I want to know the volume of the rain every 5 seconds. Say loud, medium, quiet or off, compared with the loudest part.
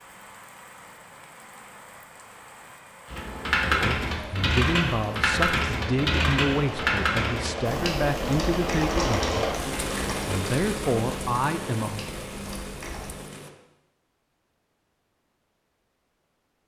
quiet, loud, loud, off.